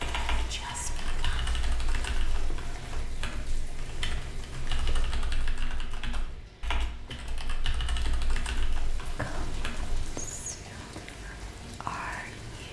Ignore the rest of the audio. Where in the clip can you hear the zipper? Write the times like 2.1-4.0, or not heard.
not heard.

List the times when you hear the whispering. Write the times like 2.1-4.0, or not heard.
0.0-1.5, 9.1-12.6.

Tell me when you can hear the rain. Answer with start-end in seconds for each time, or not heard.
0.0-12.6.